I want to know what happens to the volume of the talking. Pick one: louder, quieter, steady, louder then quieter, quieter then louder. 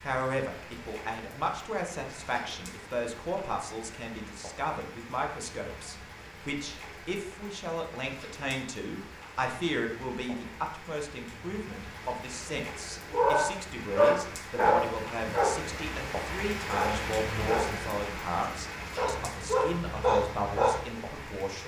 steady.